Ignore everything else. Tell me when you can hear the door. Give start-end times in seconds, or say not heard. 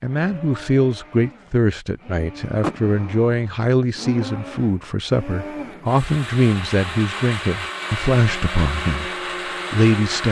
2.6-3.5.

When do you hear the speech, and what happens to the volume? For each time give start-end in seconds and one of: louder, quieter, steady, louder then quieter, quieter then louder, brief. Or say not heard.
0.0-9.1 steady
9.7-10.2 brief.